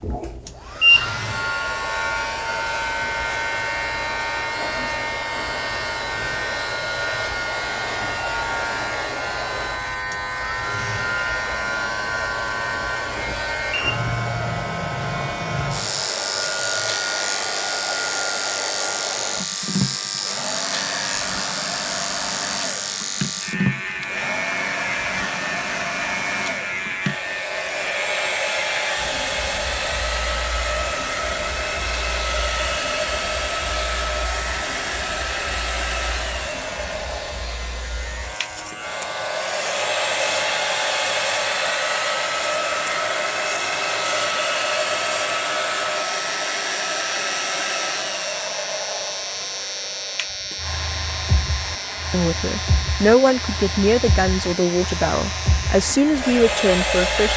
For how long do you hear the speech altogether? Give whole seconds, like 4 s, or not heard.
5 s.